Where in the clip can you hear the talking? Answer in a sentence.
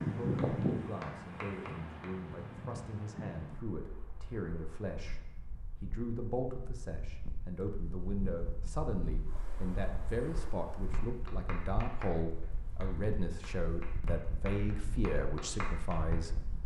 You can hear the talking from 0.0 to 16.6 s.